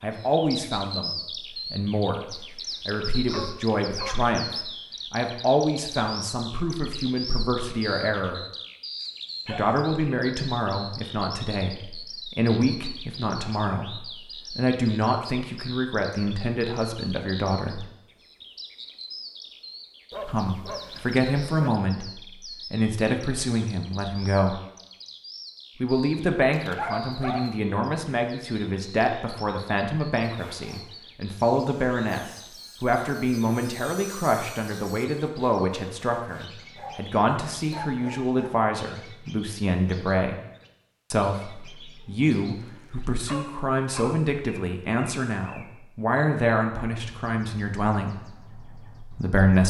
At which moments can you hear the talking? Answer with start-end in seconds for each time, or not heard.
0.0-8.4, 9.4-17.9, 20.2-22.1, 22.7-24.6, 25.8-40.4, 41.1-49.6.